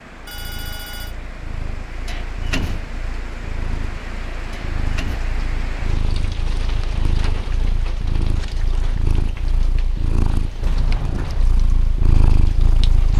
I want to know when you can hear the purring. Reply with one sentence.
You can hear the purring from 0.2 to 13.1 s.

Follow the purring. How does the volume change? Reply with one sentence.
The loudness of the purring goes up.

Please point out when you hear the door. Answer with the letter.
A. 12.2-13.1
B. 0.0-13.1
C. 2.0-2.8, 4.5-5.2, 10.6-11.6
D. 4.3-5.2
C.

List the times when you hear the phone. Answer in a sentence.
The phone can be heard from 0.2 to 1.1 s.